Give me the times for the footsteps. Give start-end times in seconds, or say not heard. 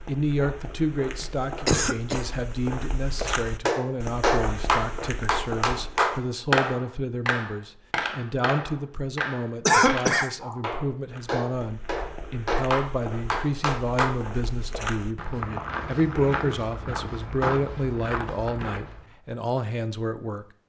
0.0-6.2, 11.1-19.1.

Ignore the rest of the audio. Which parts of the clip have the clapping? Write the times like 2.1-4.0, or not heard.
3.6-14.1.